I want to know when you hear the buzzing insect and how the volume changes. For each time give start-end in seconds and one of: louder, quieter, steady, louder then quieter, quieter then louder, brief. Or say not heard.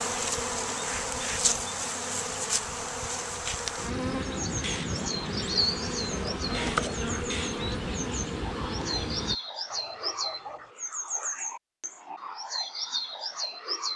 0.0-9.3 steady.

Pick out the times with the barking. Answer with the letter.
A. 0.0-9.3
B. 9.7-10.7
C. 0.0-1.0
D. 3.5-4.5
B.